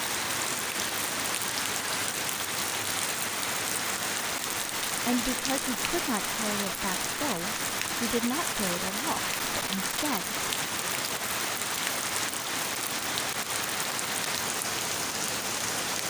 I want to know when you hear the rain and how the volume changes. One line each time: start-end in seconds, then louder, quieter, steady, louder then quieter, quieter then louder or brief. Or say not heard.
0.0-16.0 steady.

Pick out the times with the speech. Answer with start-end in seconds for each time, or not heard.
5.0-10.3.